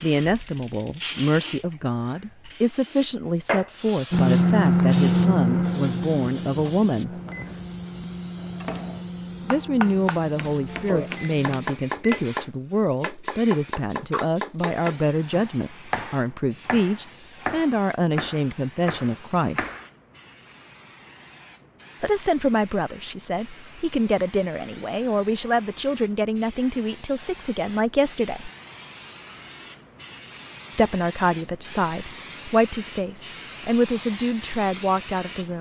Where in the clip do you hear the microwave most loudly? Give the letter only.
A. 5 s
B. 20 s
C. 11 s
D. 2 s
A.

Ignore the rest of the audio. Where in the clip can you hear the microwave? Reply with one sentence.
The microwave can be heard from 4.1 to 12.2 s.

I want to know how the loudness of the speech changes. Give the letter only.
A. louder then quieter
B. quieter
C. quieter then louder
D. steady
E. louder
D.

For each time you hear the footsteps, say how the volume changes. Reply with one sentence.
You can't hear the footsteps here.